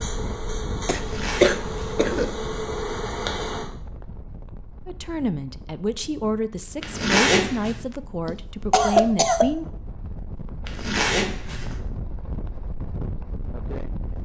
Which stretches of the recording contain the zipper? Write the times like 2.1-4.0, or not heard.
0.9-2.3, 6.8-7.8, 10.7-11.8.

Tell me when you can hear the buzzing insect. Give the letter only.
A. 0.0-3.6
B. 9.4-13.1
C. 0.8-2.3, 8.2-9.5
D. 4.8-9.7
A.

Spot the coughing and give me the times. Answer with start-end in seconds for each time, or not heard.
0.8-2.3, 8.2-9.5.